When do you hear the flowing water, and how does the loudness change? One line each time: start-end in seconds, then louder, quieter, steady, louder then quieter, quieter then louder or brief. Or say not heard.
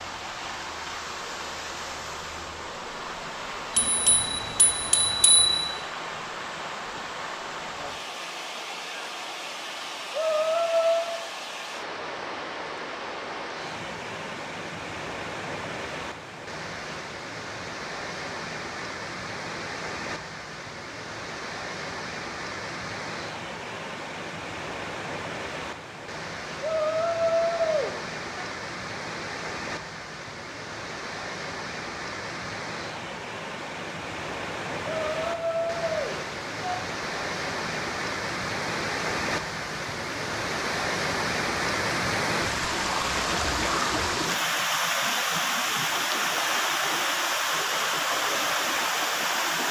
0.0-49.6 louder.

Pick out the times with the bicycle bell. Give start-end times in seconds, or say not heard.
3.7-5.7.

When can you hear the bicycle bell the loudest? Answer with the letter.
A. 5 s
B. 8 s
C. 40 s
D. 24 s
A.